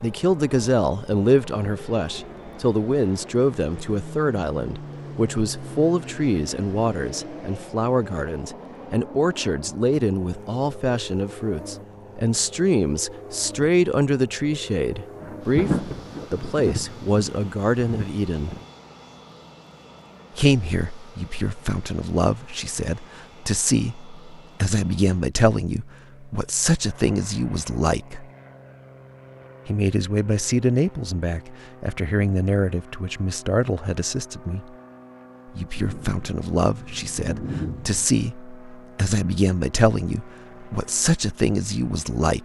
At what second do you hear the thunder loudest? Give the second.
16 s.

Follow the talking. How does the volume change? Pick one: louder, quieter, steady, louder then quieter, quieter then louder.
steady.